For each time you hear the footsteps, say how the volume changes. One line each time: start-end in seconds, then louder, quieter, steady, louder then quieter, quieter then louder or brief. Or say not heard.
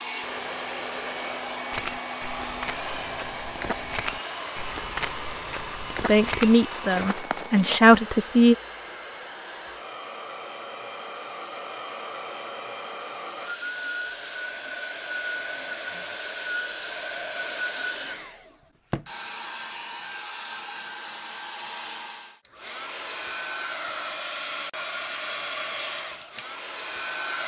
1.7-7.8 louder.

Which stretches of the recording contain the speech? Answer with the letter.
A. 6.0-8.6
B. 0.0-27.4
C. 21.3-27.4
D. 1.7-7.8
A.